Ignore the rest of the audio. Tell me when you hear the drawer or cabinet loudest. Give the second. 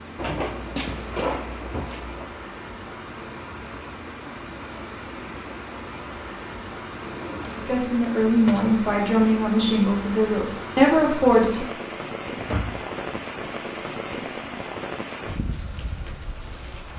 1 s.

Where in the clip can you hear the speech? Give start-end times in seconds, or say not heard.
7.5-11.7.